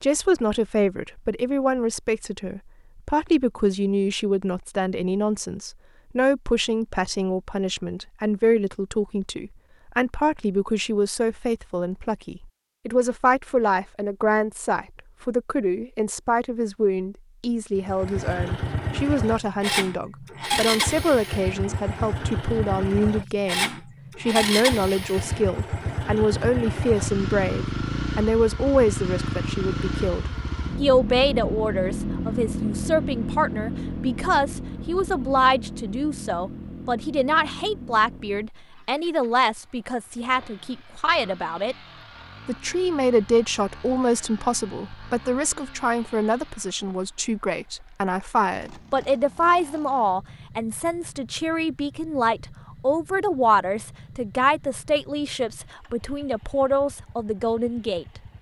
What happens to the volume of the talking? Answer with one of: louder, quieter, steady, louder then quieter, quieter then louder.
steady.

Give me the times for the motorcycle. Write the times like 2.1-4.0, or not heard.
17.8-58.3.